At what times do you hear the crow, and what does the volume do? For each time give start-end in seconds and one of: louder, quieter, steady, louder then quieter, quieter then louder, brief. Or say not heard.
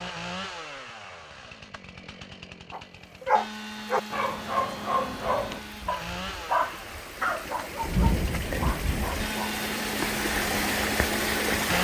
not heard.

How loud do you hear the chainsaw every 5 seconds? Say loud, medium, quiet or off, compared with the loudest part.
medium, medium, loud.